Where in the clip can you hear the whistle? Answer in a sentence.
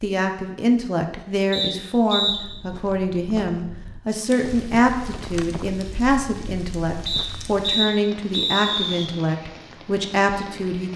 The whistle can be heard from 1.5 to 2.4 s and from 7.0 to 9.1 s.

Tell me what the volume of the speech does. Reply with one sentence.
The loudness of the speech stays about the same.